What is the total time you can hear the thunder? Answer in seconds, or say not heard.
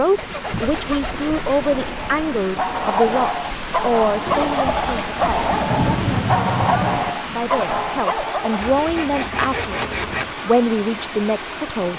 2 s.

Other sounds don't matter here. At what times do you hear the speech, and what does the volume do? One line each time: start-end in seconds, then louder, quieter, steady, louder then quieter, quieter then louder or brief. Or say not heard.
0.0-11.9 quieter then louder.